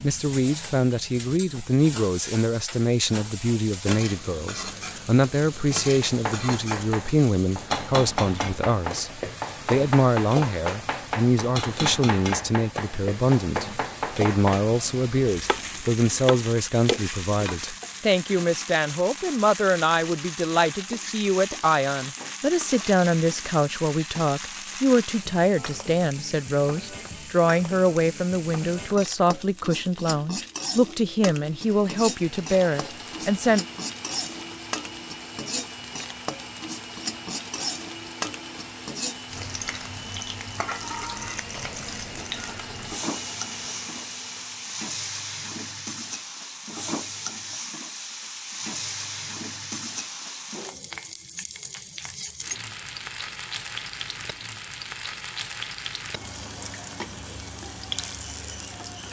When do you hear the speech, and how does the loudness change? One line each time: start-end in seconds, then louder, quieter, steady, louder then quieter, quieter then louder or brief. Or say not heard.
0.0-33.6 steady.